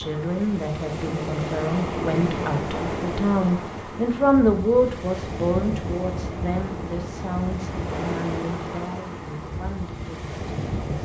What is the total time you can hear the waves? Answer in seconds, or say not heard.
11 s.